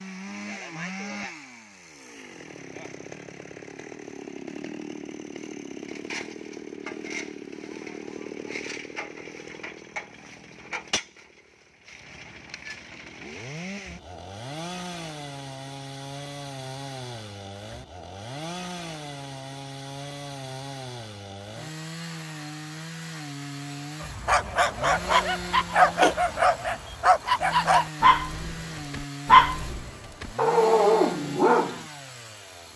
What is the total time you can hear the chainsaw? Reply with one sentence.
The chainsaw can be heard for 33 seconds in total.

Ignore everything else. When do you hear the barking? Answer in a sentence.
You can hear the barking from 24.0 to 31.8 s.